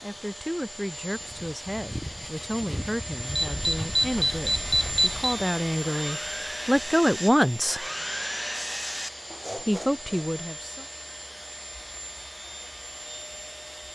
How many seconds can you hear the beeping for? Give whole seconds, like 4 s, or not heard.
2 s.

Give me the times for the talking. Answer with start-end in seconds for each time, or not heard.
0.0-7.8, 9.6-10.8.